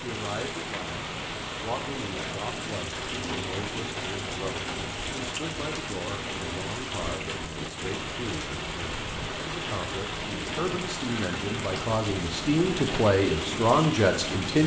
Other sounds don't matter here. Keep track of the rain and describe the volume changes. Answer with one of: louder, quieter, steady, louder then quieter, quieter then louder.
steady.